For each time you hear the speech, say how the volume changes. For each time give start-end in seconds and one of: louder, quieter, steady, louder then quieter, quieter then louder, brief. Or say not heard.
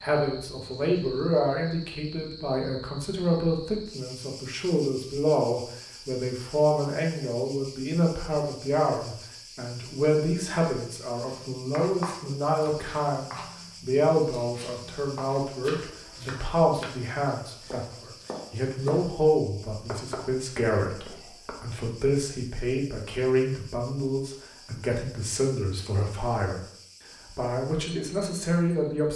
0.0-26.6 steady
27.2-29.1 brief.